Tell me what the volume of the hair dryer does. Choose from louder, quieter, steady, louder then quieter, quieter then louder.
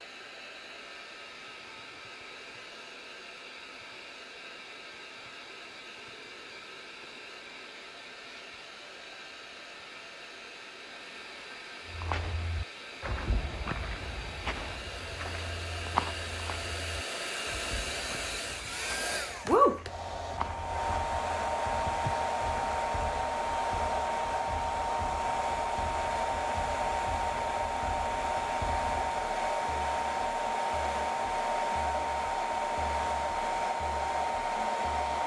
louder.